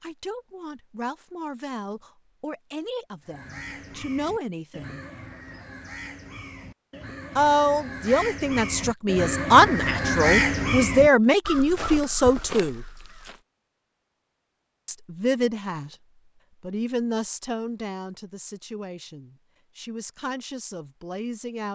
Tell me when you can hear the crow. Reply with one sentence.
The crow can be heard from 3.2 to 13.4 s.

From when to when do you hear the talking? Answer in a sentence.
The talking can be heard from 0.0 to 5.0 s, from 7.3 to 12.8 s, from 14.8 to 15.9 s and from 16.6 to 21.6 s.